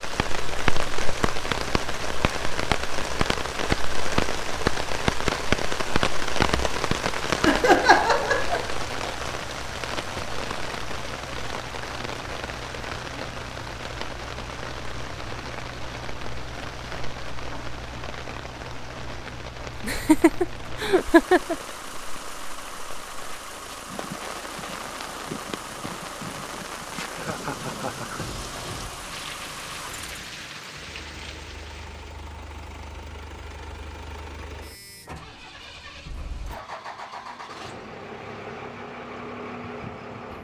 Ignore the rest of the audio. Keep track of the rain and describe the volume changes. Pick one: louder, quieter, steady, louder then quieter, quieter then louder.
quieter.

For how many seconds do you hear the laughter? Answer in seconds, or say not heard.
4 s.